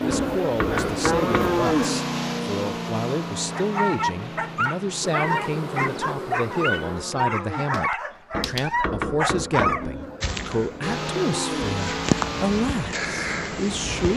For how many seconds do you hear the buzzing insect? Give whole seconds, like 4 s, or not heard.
6 s.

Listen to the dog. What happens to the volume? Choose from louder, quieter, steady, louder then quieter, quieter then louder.
steady.